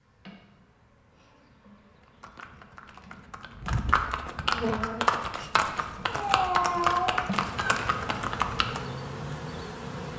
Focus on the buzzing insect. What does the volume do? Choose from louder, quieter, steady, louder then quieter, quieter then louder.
louder.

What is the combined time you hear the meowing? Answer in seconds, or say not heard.
2 s.